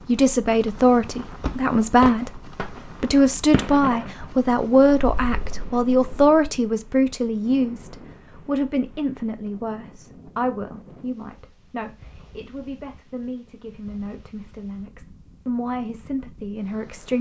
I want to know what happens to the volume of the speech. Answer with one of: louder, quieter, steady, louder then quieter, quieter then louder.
quieter.